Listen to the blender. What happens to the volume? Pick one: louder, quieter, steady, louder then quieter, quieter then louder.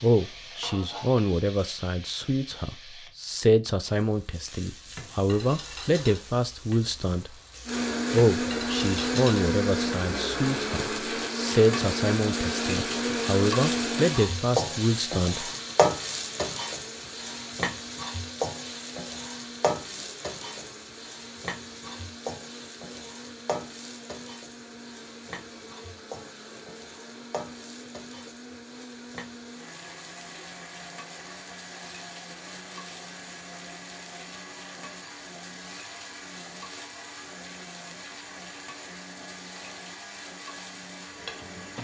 quieter.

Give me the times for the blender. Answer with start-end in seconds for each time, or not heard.
7.7-41.7.